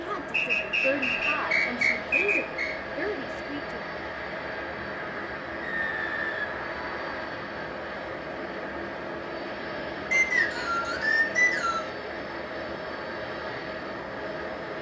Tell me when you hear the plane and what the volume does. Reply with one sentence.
The plane can be heard from 0.0 to 14.7 s, at a steady volume.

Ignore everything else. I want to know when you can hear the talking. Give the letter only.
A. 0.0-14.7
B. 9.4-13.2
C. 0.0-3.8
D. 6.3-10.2
C.